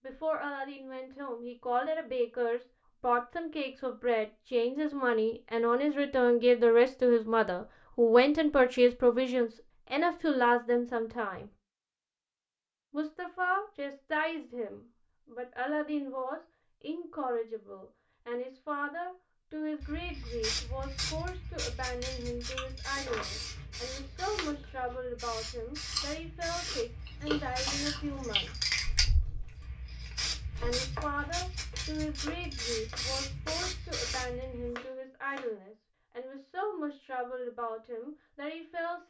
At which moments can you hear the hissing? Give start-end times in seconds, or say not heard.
19.8-34.7.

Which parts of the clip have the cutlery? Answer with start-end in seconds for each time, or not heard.
not heard.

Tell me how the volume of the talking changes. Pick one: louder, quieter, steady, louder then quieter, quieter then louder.
quieter.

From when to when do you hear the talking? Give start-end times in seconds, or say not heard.
0.0-11.5, 12.9-28.5, 30.6-39.0.